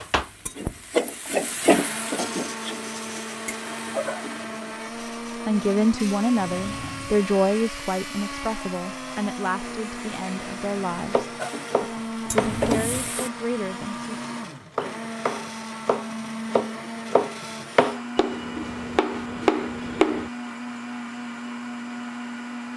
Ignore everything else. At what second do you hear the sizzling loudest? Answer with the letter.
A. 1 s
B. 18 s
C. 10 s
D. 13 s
A.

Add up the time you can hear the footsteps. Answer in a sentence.
You can't hear the footsteps here.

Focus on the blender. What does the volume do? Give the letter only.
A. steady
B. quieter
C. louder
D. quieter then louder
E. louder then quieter
A.